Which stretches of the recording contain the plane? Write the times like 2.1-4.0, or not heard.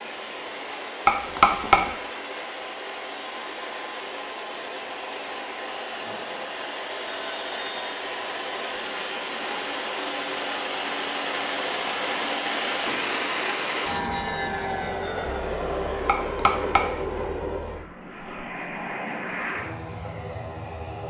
0.0-21.0.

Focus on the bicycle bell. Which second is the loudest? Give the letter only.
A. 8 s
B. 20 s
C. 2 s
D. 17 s
C.